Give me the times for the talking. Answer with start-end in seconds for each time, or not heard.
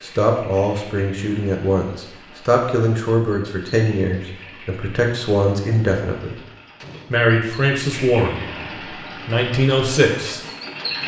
0.0-6.3, 7.1-8.4, 9.2-10.4.